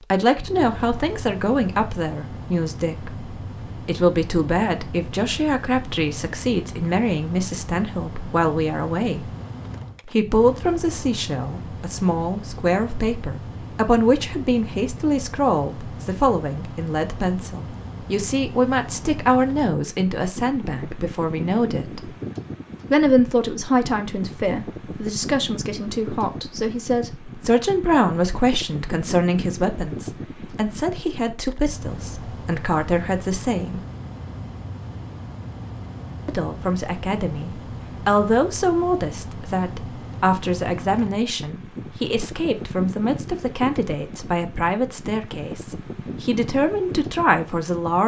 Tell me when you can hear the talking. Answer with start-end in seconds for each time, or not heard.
0.1-9.3, 10.1-22.1, 22.9-33.8, 36.2-48.0.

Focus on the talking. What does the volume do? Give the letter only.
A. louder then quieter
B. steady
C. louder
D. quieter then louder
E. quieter
B.